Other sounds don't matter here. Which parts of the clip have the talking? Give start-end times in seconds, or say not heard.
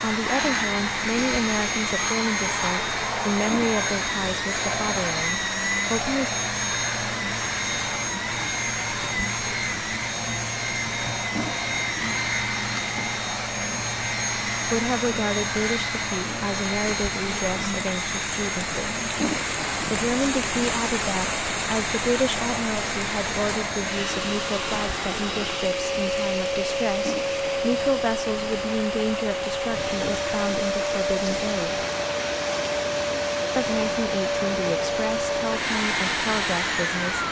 0.0-6.3, 14.7-19.1, 19.9-31.9, 33.5-37.2.